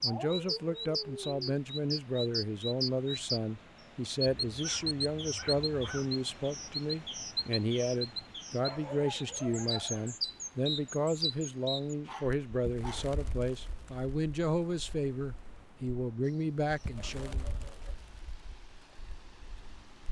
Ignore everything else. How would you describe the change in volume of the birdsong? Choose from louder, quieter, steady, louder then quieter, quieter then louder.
quieter.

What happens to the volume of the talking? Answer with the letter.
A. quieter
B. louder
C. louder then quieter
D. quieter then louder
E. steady
E.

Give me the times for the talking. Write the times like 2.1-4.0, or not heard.
0.0-17.4.